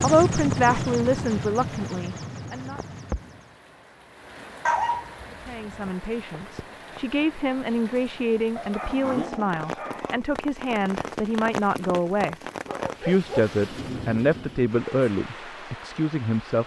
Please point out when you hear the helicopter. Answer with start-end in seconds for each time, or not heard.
0.0-3.6.